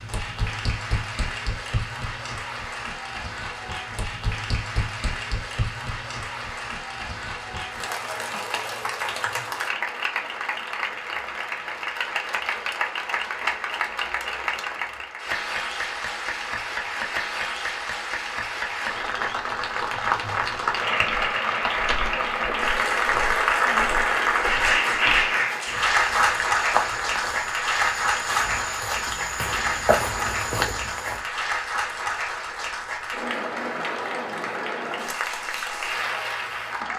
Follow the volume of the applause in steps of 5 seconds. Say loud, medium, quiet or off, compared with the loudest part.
medium, medium, medium, medium, loud, loud, medium, medium.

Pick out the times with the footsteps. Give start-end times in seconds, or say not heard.
21.1-31.2.